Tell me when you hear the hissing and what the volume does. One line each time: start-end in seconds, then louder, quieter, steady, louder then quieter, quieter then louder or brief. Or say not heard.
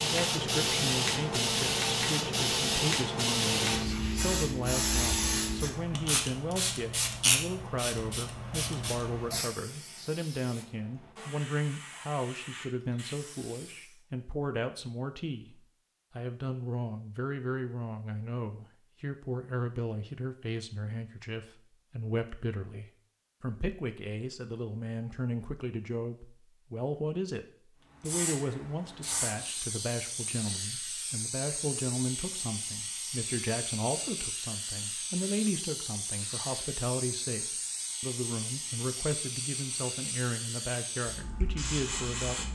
0.0-14.0 quieter
27.9-42.4 steady.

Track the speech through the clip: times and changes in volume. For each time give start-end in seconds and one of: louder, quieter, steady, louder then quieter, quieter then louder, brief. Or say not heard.
0.0-42.4 steady.